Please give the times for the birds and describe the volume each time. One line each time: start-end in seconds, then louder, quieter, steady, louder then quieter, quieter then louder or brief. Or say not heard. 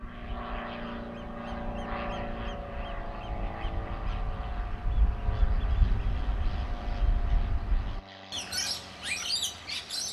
0.0-10.0 louder.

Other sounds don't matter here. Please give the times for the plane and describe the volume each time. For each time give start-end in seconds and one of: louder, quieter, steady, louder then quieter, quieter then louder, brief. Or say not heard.
0.0-10.0 quieter.